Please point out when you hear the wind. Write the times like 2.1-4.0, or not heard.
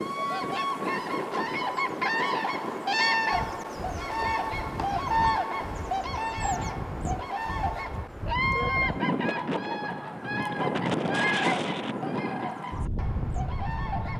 0.0-14.1.